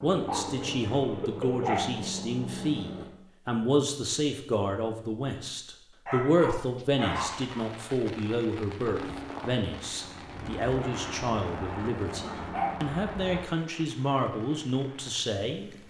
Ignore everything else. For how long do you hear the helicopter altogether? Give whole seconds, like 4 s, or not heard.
8 s.